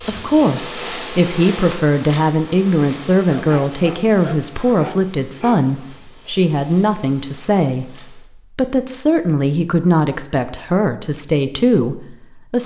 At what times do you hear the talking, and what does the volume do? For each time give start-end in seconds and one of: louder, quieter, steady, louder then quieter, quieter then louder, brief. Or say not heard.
0.1-12.6 steady.